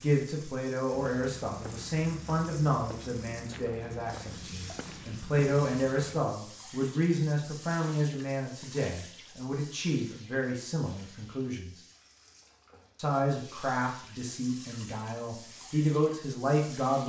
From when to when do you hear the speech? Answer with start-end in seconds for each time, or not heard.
0.0-11.8, 12.9-17.0.